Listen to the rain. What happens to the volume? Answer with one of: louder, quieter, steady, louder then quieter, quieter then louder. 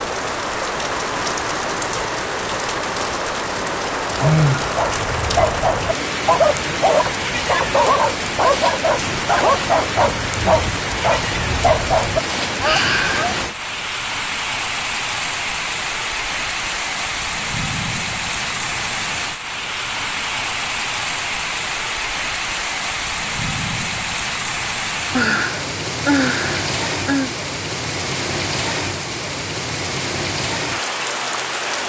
steady.